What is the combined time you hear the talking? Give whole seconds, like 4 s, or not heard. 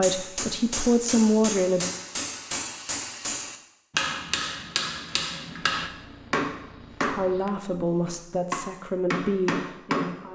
5 s.